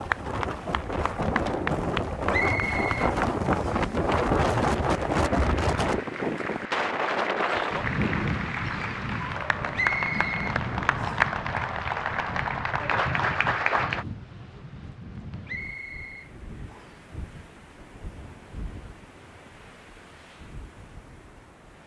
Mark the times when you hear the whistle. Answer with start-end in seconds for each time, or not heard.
2.3-3.9, 9.8-11.2, 15.4-17.1.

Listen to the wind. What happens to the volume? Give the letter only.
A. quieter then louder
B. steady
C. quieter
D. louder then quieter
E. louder
C.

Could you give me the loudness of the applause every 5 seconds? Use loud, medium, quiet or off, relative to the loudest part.
medium, medium, loud, off, off.